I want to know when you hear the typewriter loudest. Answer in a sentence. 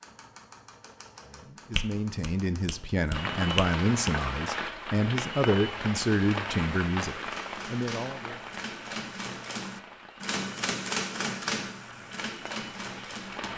The volume of the typewriter peaks at 11 seconds.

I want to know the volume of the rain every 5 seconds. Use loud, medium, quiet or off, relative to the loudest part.
loud, loud, medium.